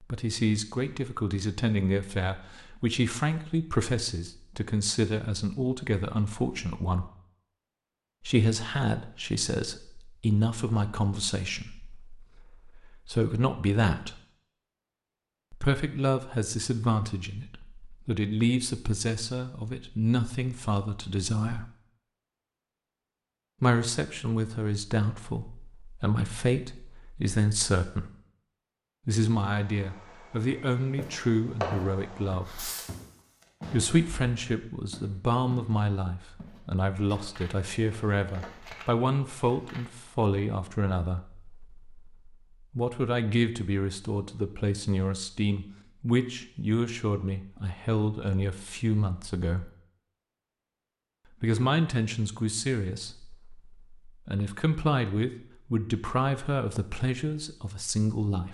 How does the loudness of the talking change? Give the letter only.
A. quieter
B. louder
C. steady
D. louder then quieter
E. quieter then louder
C.